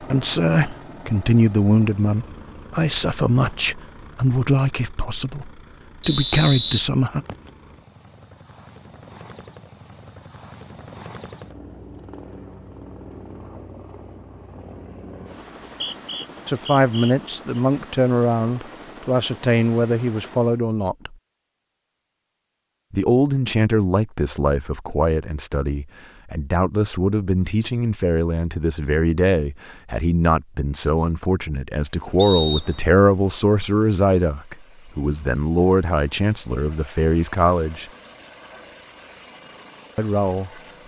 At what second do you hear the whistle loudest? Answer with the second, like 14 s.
6 s.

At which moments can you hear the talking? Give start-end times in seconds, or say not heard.
0.0-7.2, 16.4-21.1, 22.9-37.9, 40.0-40.5.